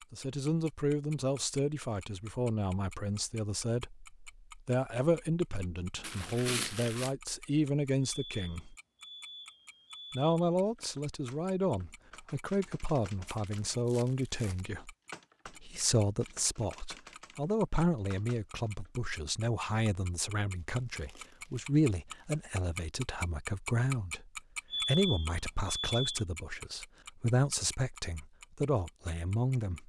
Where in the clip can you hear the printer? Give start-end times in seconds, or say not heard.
not heard.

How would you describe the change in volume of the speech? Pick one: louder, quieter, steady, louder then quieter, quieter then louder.
steady.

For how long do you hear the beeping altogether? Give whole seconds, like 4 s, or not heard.
4 s.